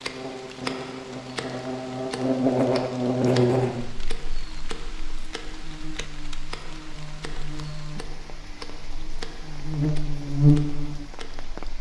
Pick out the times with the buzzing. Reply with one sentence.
The buzzing can be heard from 0.0 to 11.5 s.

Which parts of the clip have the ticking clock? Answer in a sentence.
You can hear the ticking clock from 0.0 to 11.6 s.